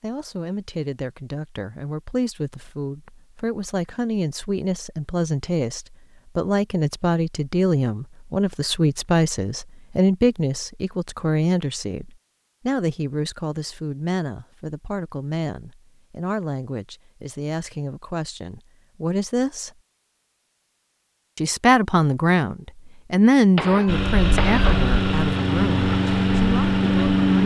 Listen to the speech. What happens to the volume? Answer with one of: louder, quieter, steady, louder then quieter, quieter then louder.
louder.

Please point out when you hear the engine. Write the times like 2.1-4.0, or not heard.
23.9-27.4.